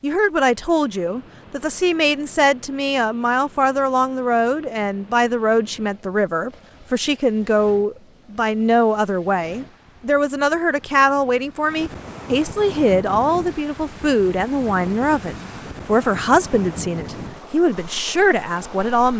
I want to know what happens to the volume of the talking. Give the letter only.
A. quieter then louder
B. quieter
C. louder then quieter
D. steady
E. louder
D.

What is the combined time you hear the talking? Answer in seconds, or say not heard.
19 s.